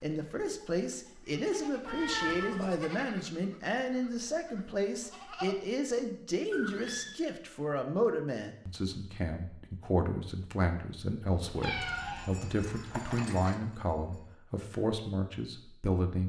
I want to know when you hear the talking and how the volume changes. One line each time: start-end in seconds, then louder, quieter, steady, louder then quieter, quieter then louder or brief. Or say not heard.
0.0-16.2 steady.